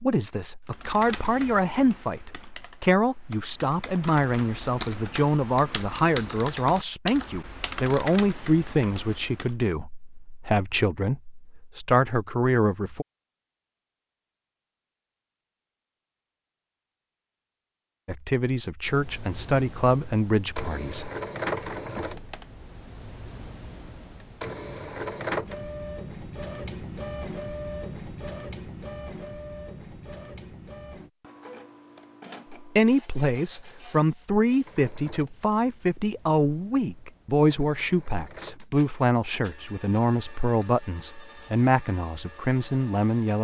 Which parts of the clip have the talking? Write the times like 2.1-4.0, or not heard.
0.0-13.1, 18.1-21.1, 32.6-43.4.